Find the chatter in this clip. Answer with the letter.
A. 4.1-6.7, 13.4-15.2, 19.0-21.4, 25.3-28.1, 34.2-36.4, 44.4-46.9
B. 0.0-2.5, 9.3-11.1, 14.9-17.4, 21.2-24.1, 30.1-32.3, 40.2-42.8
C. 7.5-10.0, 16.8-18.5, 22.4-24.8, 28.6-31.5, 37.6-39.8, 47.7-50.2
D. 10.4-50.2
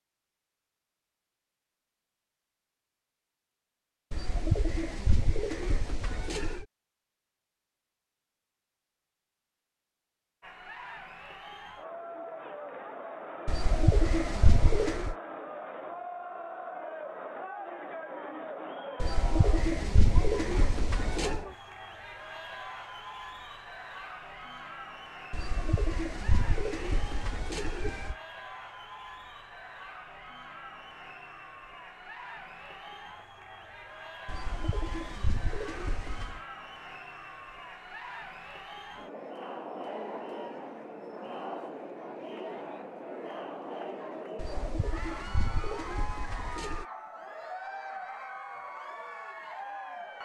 D.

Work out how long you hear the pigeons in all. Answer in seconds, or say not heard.
14 s.